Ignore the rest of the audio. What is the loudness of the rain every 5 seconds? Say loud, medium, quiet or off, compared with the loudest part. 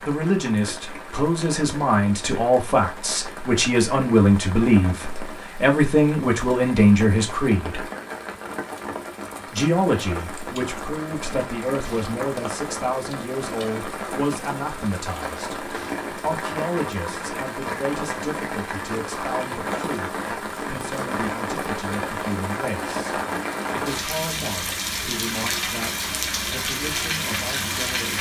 medium, medium, medium, loud, loud, loud.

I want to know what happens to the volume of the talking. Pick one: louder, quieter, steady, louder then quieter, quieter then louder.
quieter.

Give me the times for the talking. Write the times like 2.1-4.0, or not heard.
0.0-7.9, 9.5-28.1.